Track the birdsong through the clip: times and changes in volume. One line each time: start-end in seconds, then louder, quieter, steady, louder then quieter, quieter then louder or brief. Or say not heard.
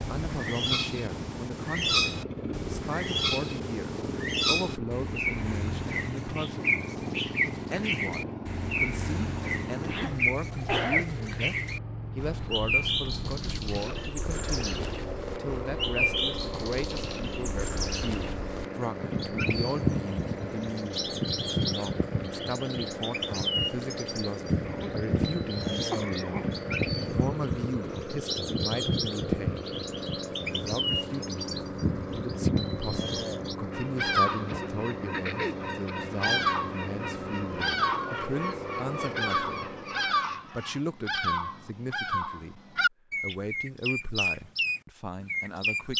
0.0-45.9 steady.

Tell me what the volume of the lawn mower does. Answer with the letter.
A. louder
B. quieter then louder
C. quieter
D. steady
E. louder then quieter
D.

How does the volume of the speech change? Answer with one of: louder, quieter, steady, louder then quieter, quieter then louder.
steady.